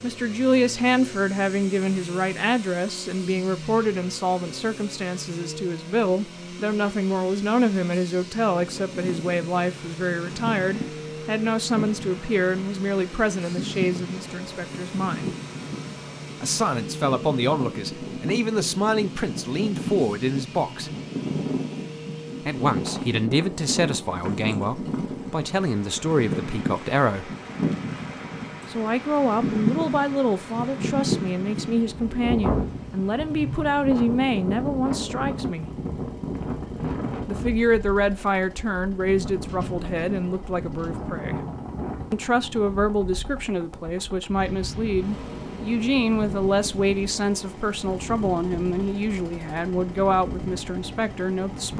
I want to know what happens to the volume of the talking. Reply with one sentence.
The volume of the talking stays about the same.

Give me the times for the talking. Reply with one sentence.
You can hear the talking from 0.0 to 15.3 s, from 16.4 to 20.9 s, from 22.4 to 27.3 s, from 28.7 to 35.7 s, from 37.2 to 41.4 s and from 42.1 to 51.7 s.